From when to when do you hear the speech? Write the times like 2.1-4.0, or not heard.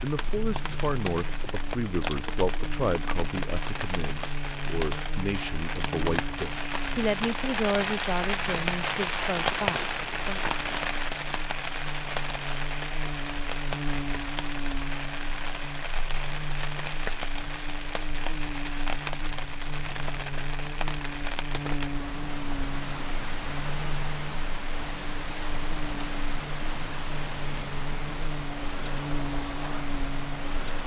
0.0-10.4.